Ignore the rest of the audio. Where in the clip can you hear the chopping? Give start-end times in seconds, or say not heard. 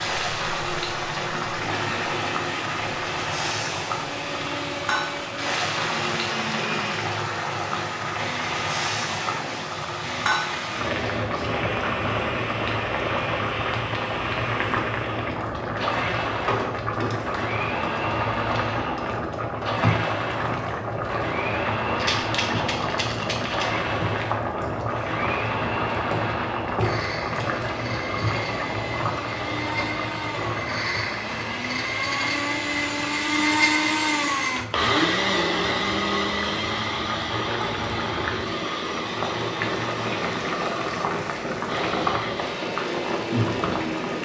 not heard.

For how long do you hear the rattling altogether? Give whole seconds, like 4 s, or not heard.
2 s.